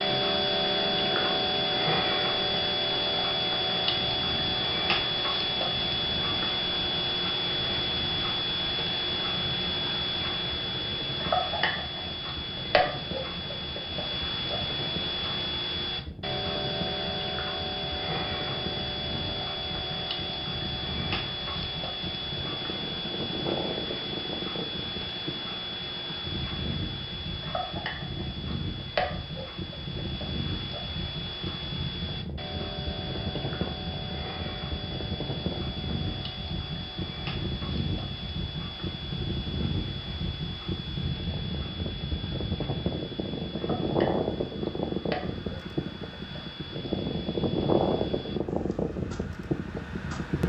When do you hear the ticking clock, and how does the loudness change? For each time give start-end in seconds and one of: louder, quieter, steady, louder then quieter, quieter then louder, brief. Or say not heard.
0.0-50.4 quieter.